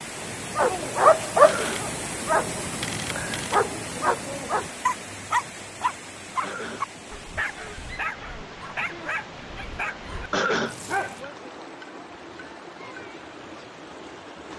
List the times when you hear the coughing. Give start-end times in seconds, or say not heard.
1.4-1.9, 6.4-6.8, 10.3-10.8.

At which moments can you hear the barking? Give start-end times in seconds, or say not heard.
0.2-11.2.